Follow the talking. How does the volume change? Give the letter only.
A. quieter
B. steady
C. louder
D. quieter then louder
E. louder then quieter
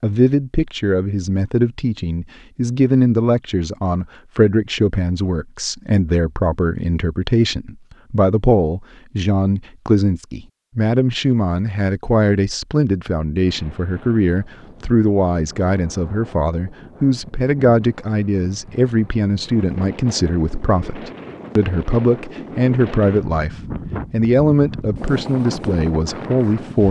B.